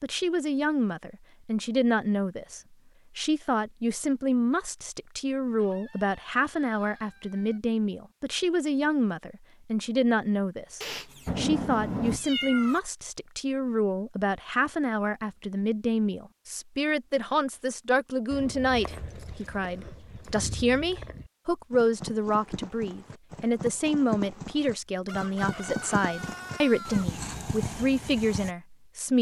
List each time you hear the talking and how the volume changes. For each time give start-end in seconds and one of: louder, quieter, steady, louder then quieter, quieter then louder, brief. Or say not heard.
0.0-29.1 steady.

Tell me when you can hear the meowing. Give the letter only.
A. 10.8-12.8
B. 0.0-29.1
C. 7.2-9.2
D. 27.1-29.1
A.